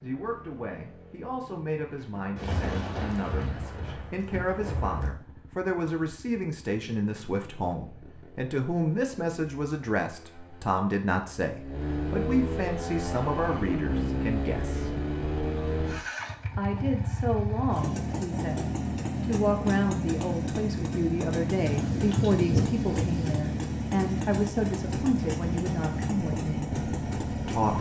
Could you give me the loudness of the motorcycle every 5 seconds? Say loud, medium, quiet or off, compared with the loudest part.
quiet, quiet, loud, loud, loud, loud.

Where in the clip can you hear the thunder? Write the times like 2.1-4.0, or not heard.
2.4-5.1, 21.6-23.4.